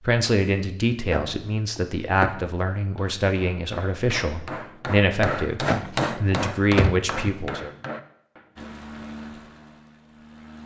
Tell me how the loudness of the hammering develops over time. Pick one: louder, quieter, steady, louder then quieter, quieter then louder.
louder then quieter.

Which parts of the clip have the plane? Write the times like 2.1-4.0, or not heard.
8.6-10.6.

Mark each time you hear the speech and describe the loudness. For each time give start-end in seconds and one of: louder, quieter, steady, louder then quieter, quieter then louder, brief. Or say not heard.
0.0-7.7 steady.